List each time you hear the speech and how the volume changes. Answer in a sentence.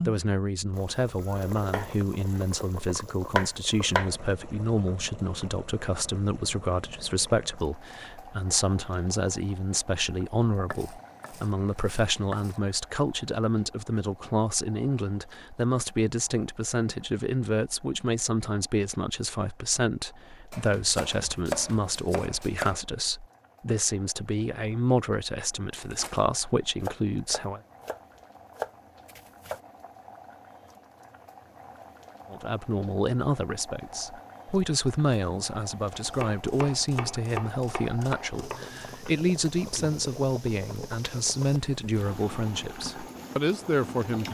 The speech can be heard from 0.1 to 27.6 s, at a steady volume; and from 32.3 to 44.2 s, at a steady volume.